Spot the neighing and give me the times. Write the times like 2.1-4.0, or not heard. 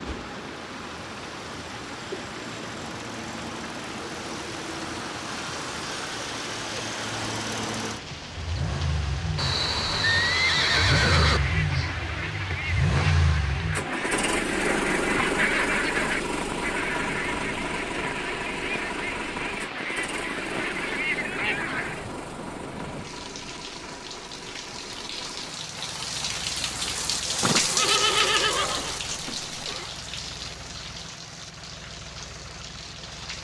9.3-11.4, 27.4-29.9.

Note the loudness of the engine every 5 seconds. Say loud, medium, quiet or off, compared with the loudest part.
medium, medium, loud, loud, medium, quiet, quiet.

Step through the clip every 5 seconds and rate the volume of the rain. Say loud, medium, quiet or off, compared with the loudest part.
medium, medium, medium, medium, medium, loud, medium.